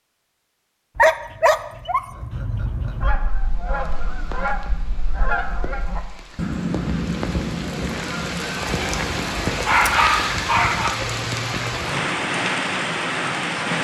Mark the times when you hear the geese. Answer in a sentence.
The geese can be heard from 3.0 to 9.4 s.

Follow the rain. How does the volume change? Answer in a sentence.
The loudness of the rain goes up.